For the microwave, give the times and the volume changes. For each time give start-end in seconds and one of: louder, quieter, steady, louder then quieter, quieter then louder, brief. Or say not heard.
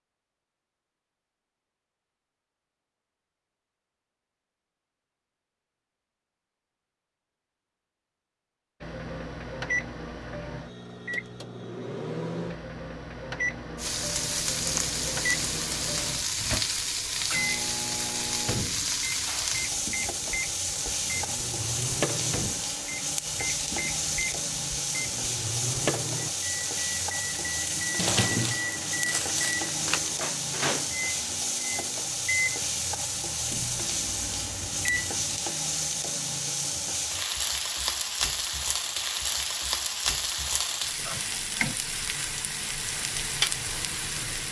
8.8-35.4 steady.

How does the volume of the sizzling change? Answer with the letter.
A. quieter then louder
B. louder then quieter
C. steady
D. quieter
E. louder
C.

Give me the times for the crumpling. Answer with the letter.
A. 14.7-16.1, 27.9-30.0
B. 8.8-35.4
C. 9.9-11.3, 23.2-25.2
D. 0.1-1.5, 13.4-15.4
A.